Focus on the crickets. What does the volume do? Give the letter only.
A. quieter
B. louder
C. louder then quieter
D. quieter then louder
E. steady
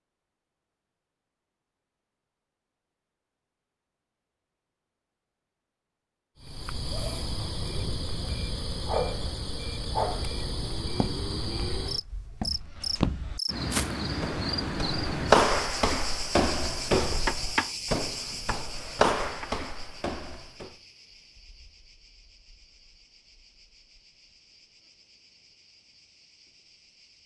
A.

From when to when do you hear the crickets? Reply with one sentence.
The crickets can be heard from 6.4 to 27.2 s.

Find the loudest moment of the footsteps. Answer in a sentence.
The volume of the footsteps peaks at 15 seconds.